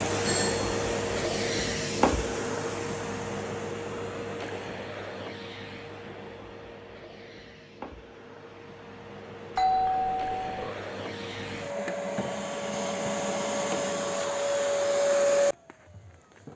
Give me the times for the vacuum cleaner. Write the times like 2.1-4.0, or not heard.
0.0-16.5.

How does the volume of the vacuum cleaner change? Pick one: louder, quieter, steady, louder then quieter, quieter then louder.
quieter then louder.